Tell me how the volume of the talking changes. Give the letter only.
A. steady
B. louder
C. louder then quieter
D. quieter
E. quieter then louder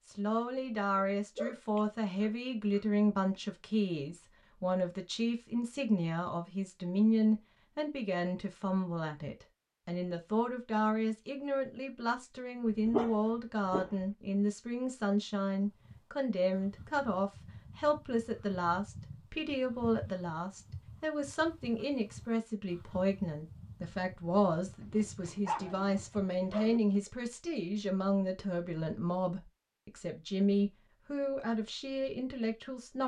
A.